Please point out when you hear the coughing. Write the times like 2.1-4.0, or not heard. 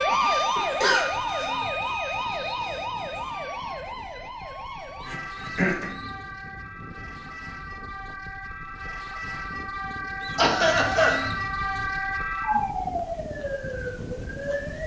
0.6-1.6, 5.0-5.9, 10.3-11.2.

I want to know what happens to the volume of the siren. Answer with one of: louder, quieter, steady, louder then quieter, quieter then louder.
quieter then louder.